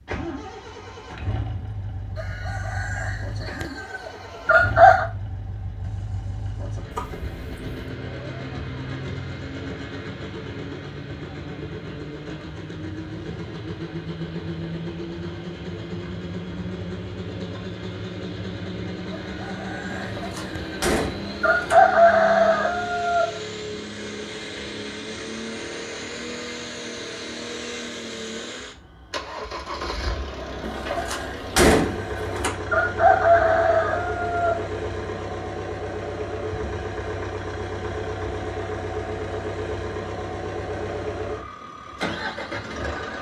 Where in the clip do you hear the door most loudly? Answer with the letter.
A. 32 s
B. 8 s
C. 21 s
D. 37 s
A.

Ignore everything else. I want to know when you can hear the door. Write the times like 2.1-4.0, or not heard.
6.9-7.7, 20.1-21.8, 30.6-32.5.